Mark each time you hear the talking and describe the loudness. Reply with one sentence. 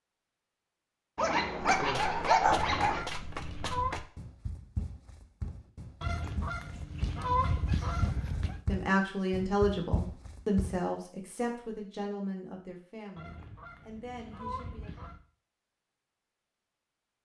The talking can be heard from 8.7 to 15.0 s, getting quieter.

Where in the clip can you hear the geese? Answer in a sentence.
The geese can be heard from 2.5 to 4.0 s, from 6.0 to 8.6 s and from 13.2 to 15.2 s.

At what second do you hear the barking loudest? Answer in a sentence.
The loudest moment of the barking is at 2 seconds.